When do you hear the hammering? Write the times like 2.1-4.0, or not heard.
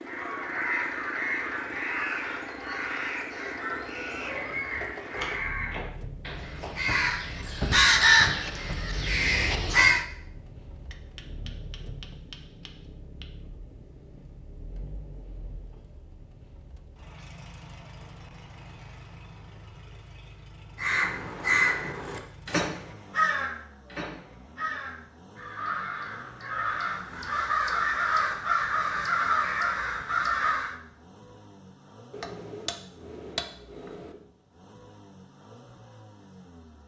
10.9-13.3, 32.1-34.1.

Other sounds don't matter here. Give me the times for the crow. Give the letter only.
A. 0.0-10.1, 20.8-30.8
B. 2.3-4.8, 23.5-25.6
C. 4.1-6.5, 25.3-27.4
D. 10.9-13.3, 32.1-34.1
A.